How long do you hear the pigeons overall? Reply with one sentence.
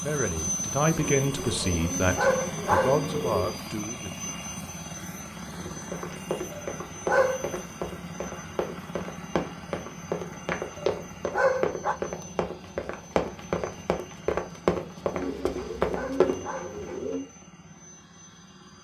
The pigeons can be heard for 5 seconds in total.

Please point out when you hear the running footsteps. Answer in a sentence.
The running footsteps can be heard from 5.6 to 16.4 s.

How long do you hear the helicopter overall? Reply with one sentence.
The helicopter can be heard for 19 seconds in total.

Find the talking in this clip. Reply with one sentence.
The talking can be heard from 0.0 to 4.3 s.